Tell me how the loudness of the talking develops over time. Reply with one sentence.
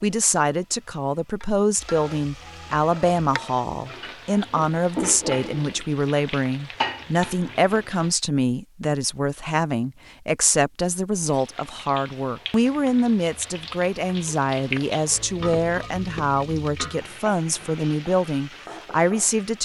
The loudness of the talking stays about the same.